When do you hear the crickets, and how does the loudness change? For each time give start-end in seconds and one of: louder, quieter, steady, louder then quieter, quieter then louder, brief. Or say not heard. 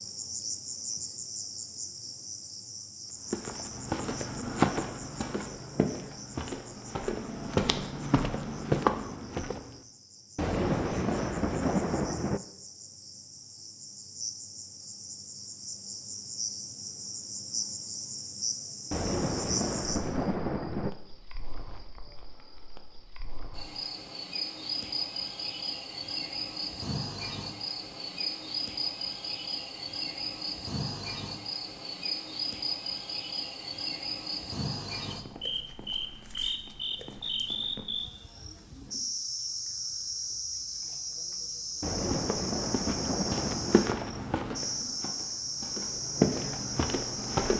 0.0-47.5 louder.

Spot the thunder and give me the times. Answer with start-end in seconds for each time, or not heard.
10.3-12.4, 18.9-20.9, 41.8-43.9.